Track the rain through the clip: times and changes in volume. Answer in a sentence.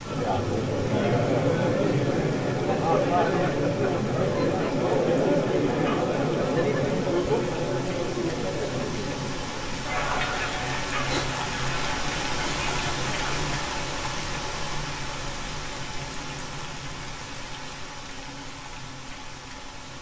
You can hear the rain from 0.0 to 19.9 s, getting louder then quieter.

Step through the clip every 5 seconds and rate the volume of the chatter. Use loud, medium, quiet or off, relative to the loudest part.
loud, loud, medium, off.